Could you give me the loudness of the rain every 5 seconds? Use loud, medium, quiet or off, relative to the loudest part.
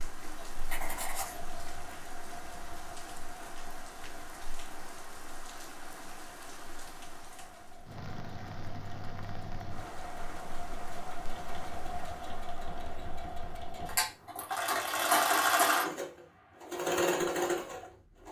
loud, loud, loud, quiet.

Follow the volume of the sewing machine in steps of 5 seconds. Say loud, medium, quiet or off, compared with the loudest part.
quiet, quiet, medium, loud.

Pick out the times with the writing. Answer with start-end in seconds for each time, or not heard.
0.5-1.4.